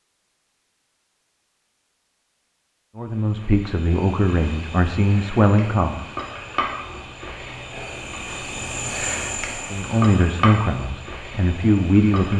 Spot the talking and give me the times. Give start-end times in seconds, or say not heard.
3.0-6.0, 9.7-12.3.